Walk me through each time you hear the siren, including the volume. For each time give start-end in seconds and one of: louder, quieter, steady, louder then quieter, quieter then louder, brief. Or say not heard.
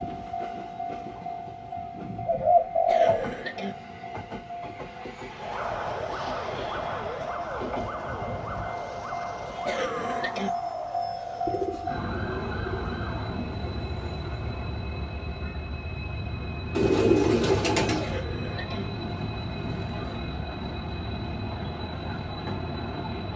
5.3-13.3 quieter.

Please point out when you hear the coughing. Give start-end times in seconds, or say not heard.
2.9-3.8, 9.7-10.5, 18.0-18.9.